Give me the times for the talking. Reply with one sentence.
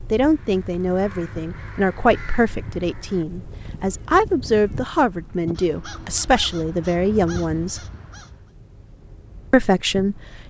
You can hear the talking from 0.1 to 7.8 s and from 9.5 to 10.4 s.